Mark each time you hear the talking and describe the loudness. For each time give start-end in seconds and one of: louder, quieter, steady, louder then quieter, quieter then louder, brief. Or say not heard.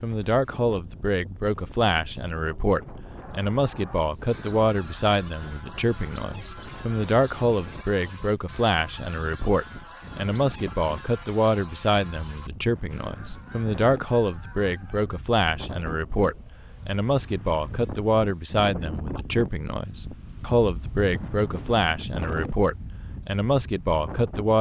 0.0-24.5 steady.